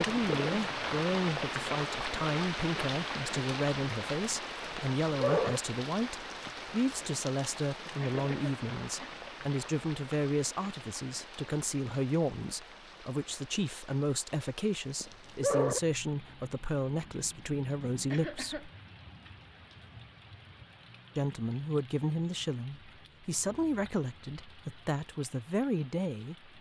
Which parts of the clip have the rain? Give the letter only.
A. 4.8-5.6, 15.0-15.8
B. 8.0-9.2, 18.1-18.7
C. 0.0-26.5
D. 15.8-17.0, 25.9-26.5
C.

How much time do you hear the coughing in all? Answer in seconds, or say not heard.
2 s.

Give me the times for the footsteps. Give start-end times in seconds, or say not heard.
not heard.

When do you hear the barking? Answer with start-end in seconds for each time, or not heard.
4.8-5.6, 15.0-15.8.